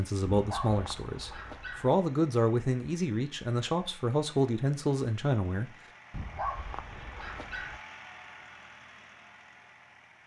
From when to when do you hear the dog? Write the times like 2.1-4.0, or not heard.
0.2-1.9, 6.1-7.8.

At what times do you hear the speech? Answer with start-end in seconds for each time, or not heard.
0.0-5.7.